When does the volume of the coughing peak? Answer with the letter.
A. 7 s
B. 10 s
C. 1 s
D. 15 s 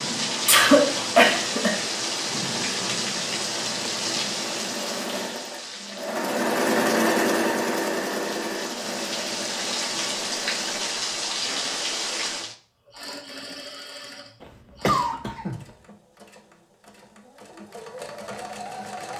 C.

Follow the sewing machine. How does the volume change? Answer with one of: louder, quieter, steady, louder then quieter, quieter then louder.
louder then quieter.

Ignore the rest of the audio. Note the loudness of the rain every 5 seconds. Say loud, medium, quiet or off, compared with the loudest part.
loud, medium, loud, off.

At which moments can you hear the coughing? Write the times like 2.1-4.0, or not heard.
0.5-1.9, 14.4-15.6.